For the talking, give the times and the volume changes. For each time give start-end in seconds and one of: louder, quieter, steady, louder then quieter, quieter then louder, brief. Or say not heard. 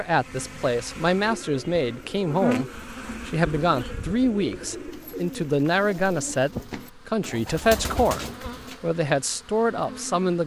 0.0-10.4 steady.